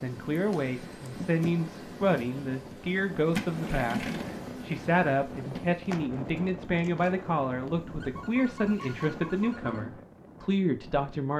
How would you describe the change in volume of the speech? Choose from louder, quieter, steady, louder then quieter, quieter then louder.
steady.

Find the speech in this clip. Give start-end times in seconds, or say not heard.
0.0-11.3.